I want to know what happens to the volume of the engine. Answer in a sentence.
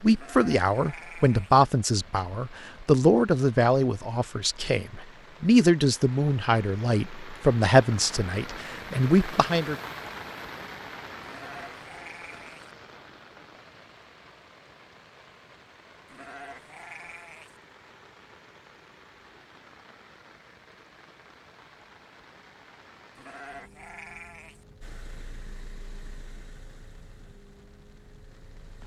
The volume of the engine goes down.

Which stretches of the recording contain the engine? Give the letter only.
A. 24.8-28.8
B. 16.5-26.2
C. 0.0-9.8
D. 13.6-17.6
A.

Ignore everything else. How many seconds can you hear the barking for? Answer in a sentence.
The barking can't be heard in this clip.